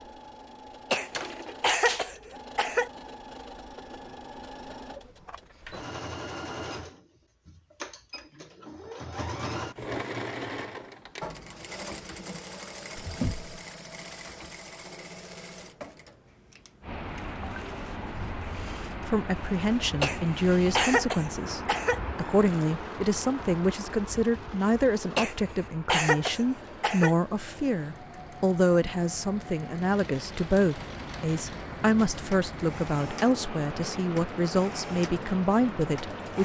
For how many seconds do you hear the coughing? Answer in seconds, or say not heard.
6 s.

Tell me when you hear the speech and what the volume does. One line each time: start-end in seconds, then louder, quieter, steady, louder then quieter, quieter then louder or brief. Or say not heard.
19.1-36.4 steady.